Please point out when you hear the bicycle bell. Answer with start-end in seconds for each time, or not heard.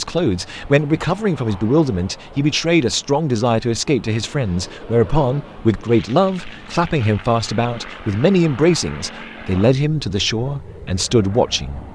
not heard.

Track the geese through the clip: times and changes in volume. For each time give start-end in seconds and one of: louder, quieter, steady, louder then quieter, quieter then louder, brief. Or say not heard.
not heard.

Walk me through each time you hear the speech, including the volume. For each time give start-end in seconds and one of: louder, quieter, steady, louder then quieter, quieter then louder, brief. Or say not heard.
0.0-11.8 steady.